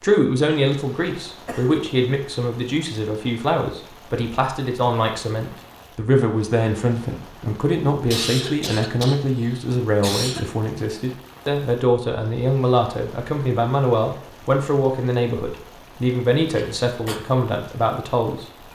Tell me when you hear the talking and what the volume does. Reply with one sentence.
The talking can be heard from 0.0 to 18.5 s, at a steady volume.